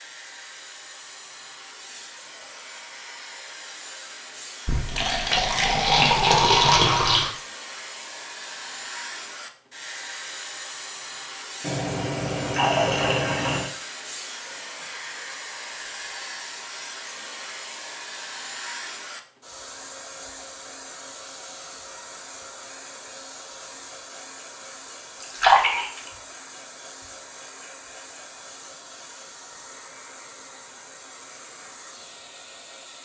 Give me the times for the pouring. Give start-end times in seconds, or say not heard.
4.7-7.3, 11.6-13.7, 25.2-26.1.